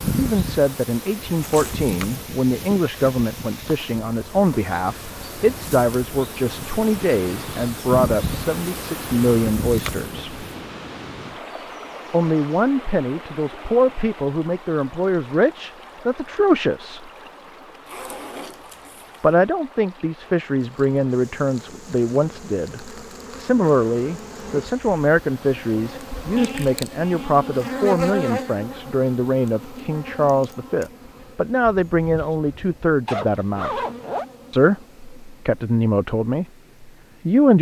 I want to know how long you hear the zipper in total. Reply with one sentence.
The zipper can be heard for 3 seconds in total.